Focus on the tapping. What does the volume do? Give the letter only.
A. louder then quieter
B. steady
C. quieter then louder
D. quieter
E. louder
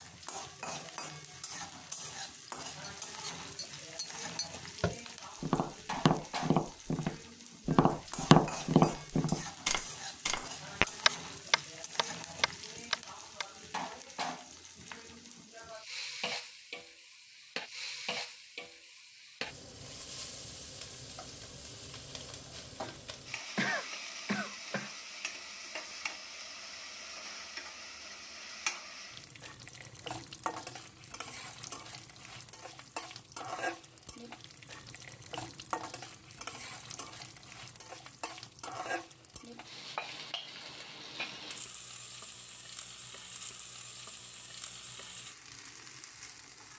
A.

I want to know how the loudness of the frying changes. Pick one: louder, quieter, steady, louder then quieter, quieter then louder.
steady.